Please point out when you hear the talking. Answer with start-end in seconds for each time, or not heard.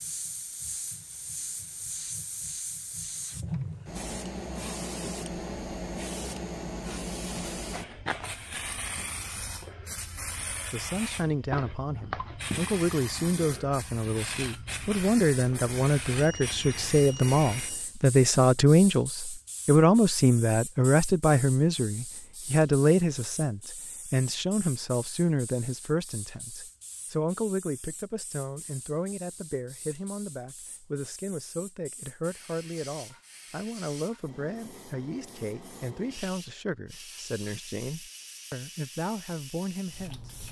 10.7-40.4.